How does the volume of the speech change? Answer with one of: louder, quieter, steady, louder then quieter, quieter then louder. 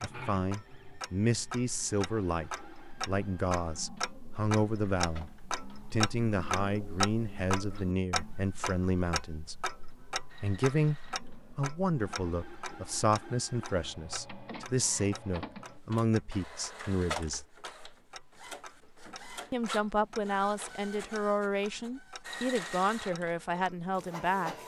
steady.